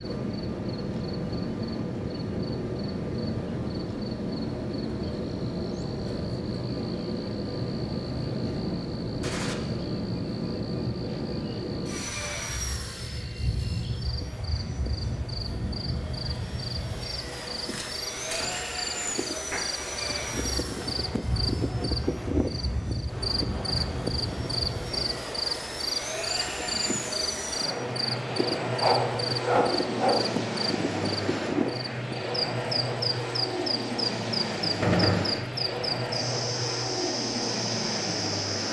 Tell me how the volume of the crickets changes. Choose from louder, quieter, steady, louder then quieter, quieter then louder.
louder.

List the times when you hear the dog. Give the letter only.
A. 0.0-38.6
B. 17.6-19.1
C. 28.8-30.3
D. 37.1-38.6
C.